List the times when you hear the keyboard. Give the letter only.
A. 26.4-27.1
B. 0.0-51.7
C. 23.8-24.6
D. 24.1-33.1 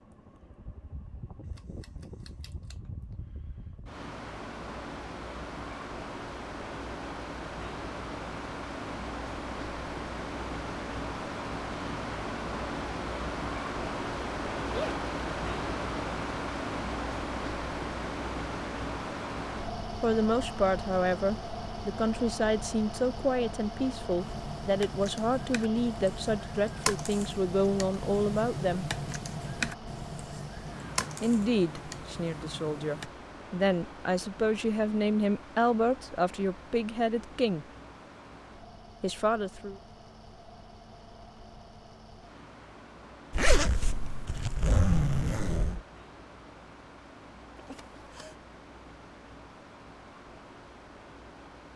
D.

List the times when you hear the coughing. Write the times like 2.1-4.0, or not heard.
47.5-48.4.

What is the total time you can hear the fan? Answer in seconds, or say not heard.
52 s.